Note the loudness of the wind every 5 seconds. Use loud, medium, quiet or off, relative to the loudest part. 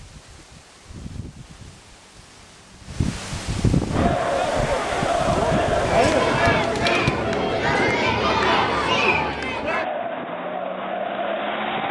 loud, loud, off.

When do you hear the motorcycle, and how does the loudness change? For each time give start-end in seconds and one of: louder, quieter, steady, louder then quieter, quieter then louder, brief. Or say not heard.
not heard.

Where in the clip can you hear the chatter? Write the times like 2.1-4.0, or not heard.
3.9-11.8.